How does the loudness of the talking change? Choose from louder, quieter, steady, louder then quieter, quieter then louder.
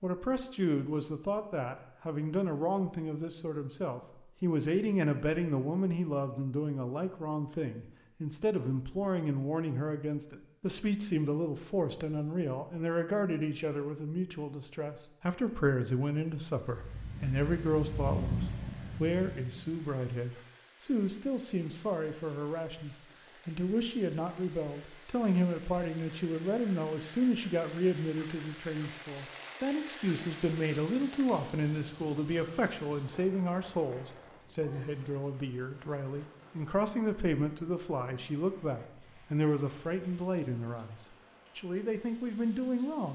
steady.